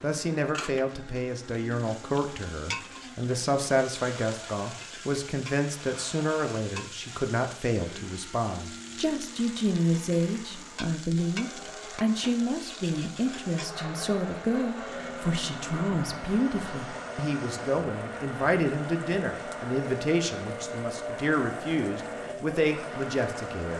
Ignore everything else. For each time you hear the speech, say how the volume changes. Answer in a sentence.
You can hear the speech from 0.0 to 23.7 s, at a steady volume.